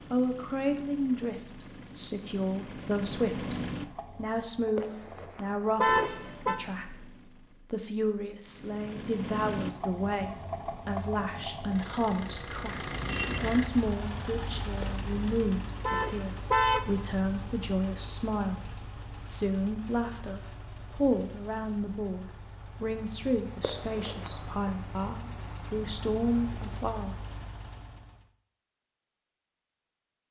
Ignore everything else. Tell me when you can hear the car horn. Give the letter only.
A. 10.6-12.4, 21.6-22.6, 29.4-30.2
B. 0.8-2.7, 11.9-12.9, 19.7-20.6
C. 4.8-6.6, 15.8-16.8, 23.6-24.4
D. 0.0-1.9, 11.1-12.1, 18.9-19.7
C.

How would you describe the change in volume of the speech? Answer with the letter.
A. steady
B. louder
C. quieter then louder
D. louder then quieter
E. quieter
A.